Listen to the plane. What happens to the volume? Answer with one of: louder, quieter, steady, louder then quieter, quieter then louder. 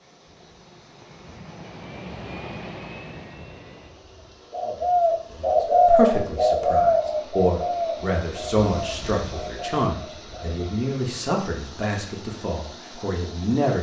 louder then quieter.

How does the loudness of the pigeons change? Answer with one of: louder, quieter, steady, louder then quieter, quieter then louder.
quieter.